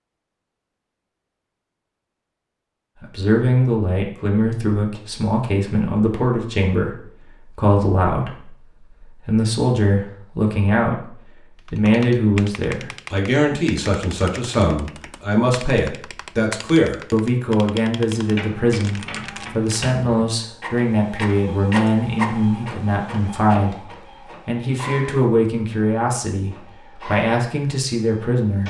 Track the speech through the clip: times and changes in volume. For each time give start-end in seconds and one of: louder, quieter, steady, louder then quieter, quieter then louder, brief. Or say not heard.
3.0-28.6 steady.